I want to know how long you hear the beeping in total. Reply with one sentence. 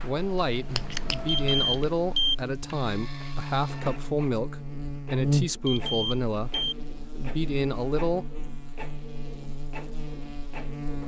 You can hear the beeping for 2 seconds altogether.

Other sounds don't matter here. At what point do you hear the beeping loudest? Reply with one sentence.
The volume of the beeping peaks at 2 seconds.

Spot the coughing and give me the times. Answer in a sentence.
The coughing can't be heard in this clip.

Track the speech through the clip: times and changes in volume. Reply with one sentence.
You can hear the speech from 0.0 to 6.5 s, at a steady volume; and briefly from 7.1 to 8.2 s.